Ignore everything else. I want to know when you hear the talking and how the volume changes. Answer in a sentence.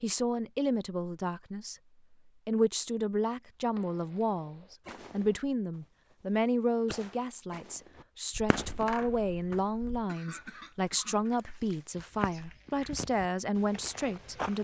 The talking can be heard from 0.0 to 14.5 s, at a steady volume.